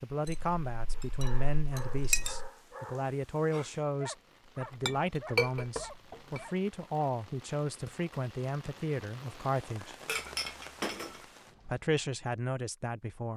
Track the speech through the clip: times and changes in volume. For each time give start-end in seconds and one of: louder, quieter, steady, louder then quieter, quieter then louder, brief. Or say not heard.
0.0-9.9 steady
11.7-13.3 brief.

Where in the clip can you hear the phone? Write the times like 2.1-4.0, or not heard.
not heard.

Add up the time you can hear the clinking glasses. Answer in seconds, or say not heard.
5 s.